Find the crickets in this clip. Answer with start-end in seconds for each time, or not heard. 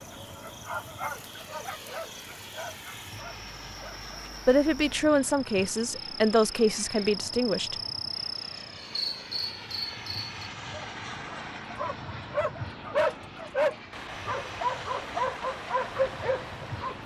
0.0-10.4.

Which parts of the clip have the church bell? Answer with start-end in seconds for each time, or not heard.
not heard.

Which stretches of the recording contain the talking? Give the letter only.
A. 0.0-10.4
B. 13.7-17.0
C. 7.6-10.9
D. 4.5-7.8
D.